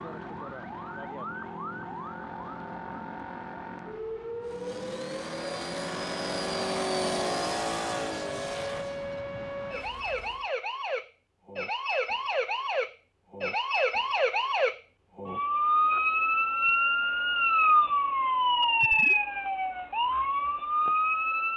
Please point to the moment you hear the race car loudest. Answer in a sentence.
The loudest moment of the race car is at 7 seconds.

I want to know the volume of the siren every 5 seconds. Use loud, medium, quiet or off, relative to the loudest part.
quiet, quiet, medium, loud, loud.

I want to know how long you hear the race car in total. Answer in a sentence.
The race car can be heard for 6 seconds in total.